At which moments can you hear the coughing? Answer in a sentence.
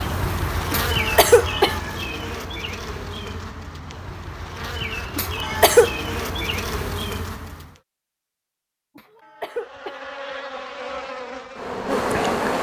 You can hear the coughing from 0.7 to 1.8 s, from 5.2 to 5.9 s and from 8.9 to 10.1 s.